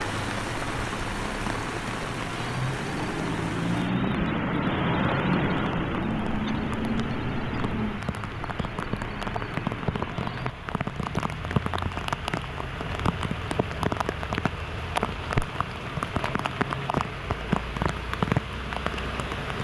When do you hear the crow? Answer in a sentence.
The crow can't be heard in this clip.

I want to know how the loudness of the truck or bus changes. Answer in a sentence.
The volume of the truck or bus goes up, then down.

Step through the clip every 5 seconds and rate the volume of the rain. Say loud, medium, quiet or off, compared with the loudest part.
medium, medium, loud, loud.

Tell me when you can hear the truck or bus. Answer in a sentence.
The truck or bus can be heard from 0.0 to 10.6 s.